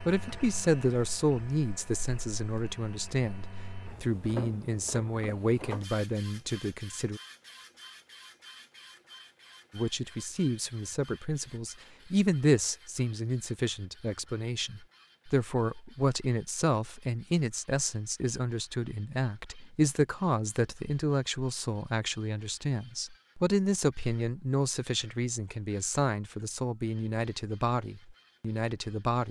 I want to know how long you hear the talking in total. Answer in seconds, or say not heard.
27 s.